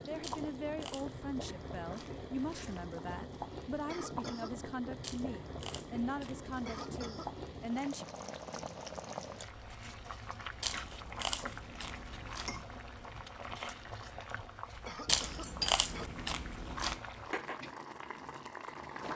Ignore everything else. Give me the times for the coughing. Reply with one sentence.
The coughing can be heard from 3.9 to 4.6 s, from 6.7 to 7.3 s and from 14.8 to 16.1 s.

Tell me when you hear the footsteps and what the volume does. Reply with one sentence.
The footsteps can't be heard in this clip.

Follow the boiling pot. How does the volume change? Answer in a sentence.
The volume of the boiling pot stays about the same.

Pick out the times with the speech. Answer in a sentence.
The speech can be heard from 0.0 to 8.1 s.